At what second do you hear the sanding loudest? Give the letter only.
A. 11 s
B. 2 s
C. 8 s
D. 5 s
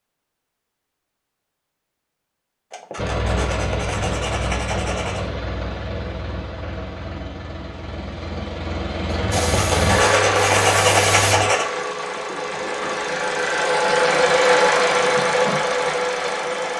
A.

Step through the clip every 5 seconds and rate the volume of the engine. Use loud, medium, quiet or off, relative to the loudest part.
medium, medium, loud, loud.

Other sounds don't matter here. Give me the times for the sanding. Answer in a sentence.
The sanding can be heard from 2.7 to 5.3 s and from 9.3 to 11.7 s.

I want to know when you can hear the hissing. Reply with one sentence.
The hissing can be heard from 9.1 to 11.5 s.